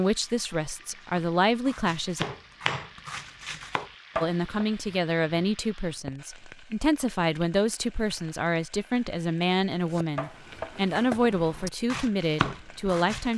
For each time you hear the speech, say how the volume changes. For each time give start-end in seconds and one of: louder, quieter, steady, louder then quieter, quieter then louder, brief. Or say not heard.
0.0-2.2 brief
4.2-13.3 steady.